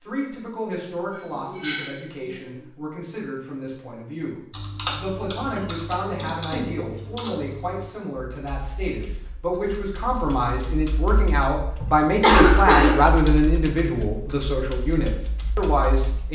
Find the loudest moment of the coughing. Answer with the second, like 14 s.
12 s.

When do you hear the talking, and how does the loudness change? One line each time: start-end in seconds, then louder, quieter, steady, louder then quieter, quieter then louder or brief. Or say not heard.
0.0-16.3 louder.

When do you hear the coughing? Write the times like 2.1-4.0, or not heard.
0.9-2.5, 5.5-6.7, 11.8-13.1.